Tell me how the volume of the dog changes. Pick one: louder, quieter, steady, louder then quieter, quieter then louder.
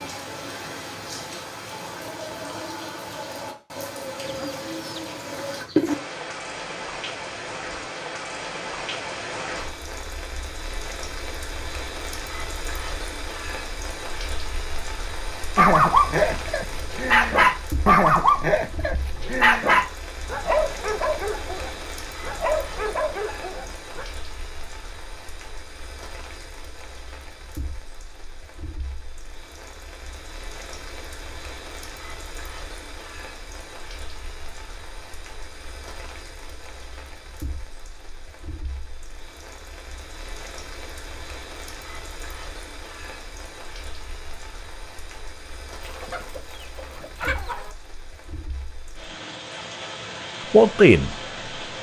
quieter.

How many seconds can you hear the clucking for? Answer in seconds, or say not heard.
4 s.